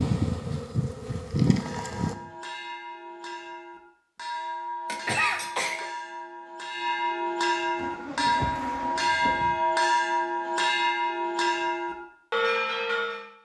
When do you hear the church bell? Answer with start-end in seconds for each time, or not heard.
1.5-13.2.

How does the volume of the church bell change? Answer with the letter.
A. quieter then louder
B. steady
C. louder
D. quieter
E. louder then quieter
C.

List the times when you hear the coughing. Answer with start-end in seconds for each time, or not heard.
4.8-5.8.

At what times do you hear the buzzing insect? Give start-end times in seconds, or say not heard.
0.0-2.1, 7.8-9.6.